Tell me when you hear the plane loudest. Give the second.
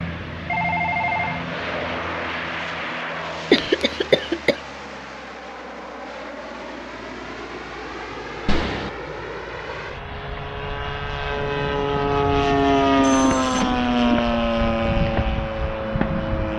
13 s.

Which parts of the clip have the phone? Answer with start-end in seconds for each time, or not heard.
0.5-1.4, 8.4-8.9, 13.0-13.8.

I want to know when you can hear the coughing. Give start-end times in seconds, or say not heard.
3.5-4.6.